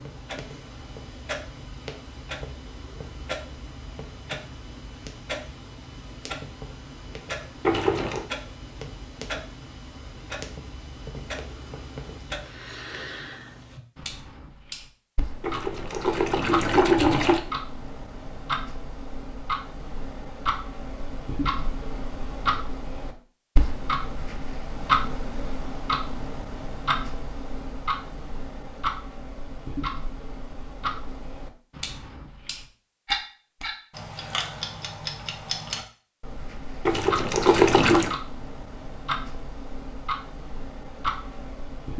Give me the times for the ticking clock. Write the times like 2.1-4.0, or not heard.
0.0-41.9.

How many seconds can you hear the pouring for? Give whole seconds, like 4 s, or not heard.
4 s.